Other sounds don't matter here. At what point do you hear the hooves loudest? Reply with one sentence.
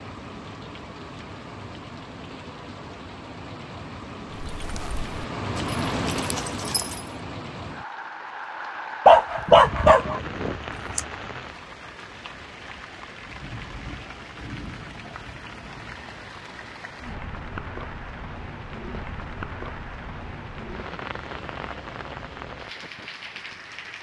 The loudest moment of the hooves is at 7 seconds.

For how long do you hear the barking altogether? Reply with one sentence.
The barking can be heard for 2 seconds in total.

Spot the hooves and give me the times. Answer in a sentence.
You can hear the hooves from 4.3 to 7.1 s.